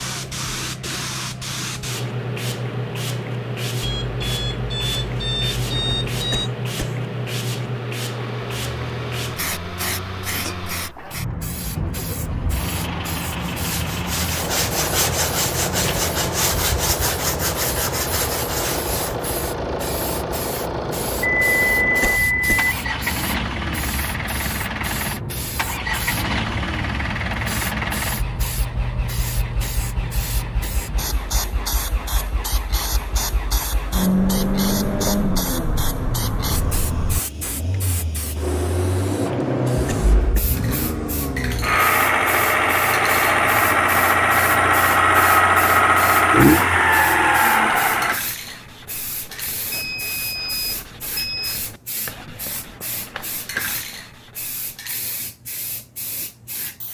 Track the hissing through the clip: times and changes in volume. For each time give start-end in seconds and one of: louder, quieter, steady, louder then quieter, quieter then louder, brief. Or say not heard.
0.0-56.8 quieter.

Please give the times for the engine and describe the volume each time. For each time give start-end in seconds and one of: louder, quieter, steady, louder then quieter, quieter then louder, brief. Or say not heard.
0.0-48.2 louder.